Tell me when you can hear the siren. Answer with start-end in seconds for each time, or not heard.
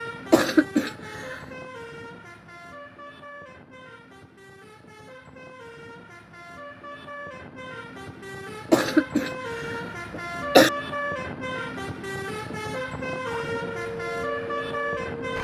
13.2-15.3.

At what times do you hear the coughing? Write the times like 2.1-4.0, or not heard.
0.3-1.4, 8.7-10.7.